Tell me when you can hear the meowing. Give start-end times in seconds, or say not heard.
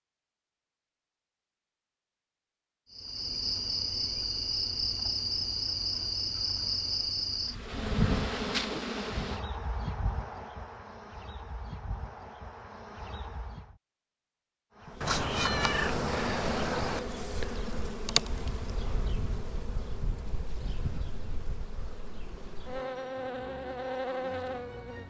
15.0-17.0.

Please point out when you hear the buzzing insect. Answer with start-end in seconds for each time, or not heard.
2.9-13.8, 14.8-25.0.